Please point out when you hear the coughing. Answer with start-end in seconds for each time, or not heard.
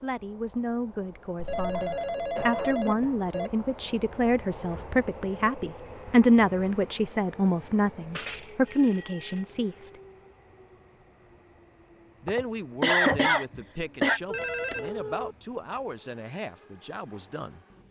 1.6-3.1, 12.2-14.2.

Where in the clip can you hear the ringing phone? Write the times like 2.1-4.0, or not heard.
1.4-3.5, 8.2-9.4, 14.3-15.3.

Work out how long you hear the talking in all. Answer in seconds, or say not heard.
15 s.